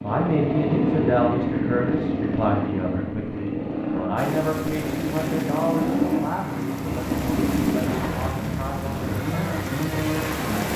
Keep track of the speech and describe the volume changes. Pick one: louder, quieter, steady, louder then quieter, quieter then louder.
quieter.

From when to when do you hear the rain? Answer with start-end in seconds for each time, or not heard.
4.2-10.7.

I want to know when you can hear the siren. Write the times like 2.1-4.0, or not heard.
not heard.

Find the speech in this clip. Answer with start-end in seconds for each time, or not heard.
0.0-9.7.